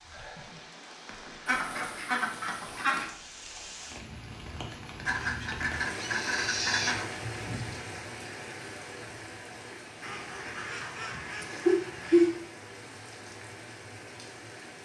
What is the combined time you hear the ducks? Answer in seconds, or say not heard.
6 s.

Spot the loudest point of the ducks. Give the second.
12 s.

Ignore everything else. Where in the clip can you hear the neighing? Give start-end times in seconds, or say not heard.
5.8-7.0.